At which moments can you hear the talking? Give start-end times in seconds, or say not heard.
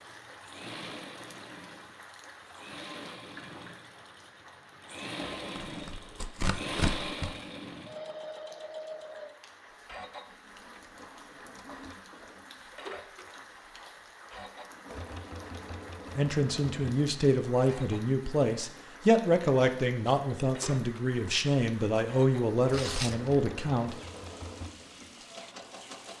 16.1-23.9.